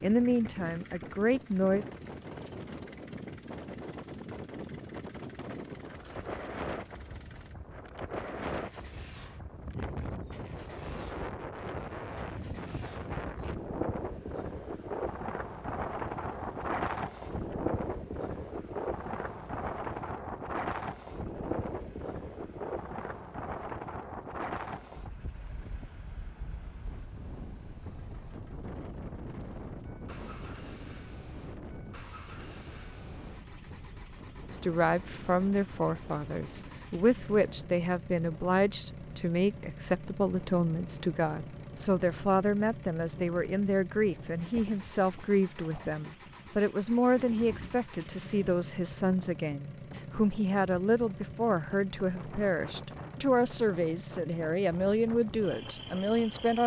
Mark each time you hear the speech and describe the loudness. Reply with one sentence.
You can hear the speech briefly from 0.0 to 1.9 s; and from 34.5 to 56.6 s, at a steady volume.